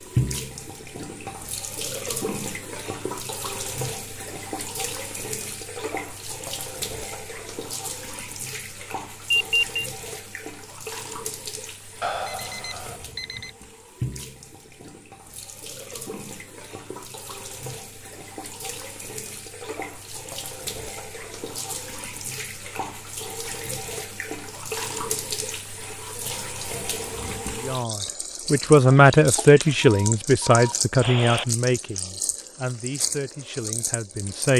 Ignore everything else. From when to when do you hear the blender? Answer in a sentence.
You can't hear the blender here.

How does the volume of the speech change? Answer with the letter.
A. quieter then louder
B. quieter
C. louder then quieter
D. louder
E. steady
B.